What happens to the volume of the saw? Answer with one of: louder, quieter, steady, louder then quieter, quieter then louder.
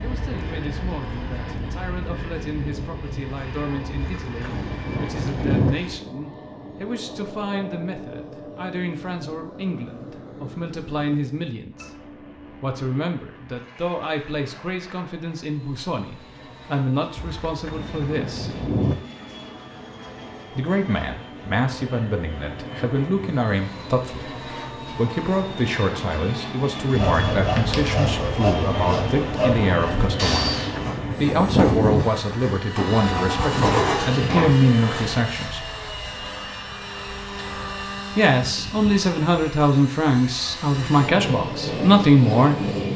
quieter then louder.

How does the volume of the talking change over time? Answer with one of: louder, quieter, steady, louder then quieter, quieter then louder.
louder.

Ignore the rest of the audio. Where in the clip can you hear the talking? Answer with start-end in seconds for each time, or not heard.
0.0-18.6, 20.5-30.6, 31.1-35.6, 38.1-42.7.